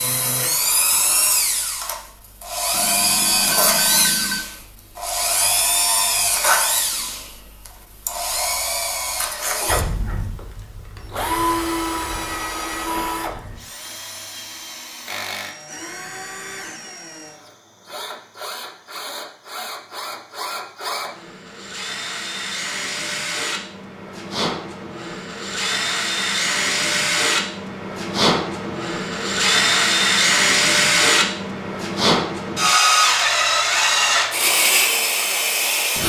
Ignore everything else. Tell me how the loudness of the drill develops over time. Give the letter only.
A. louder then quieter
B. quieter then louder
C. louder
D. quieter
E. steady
B.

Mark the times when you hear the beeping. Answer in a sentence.
The beeping can be heard from 2.7 to 4.4 s.